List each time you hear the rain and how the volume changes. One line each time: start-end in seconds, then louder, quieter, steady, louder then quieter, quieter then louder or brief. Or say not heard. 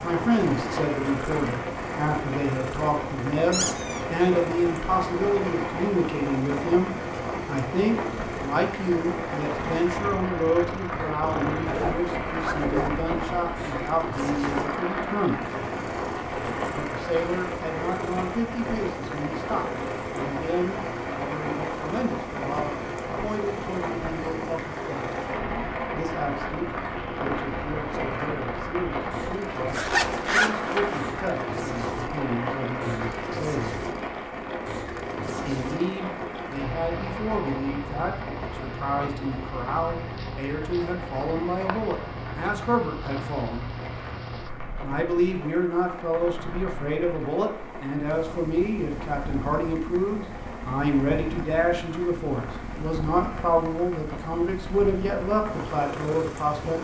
0.0-56.7 quieter.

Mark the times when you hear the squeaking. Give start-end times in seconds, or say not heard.
3.5-4.0.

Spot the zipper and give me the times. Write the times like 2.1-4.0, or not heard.
10.9-12.9, 29.7-31.0.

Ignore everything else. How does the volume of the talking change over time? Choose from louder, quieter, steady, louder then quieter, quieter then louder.
quieter then louder.